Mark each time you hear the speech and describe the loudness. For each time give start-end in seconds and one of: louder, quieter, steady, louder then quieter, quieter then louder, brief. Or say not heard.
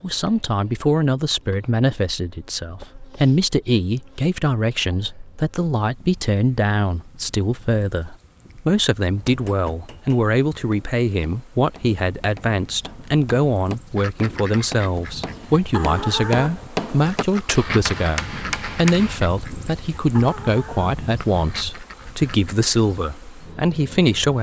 0.0-24.3 steady.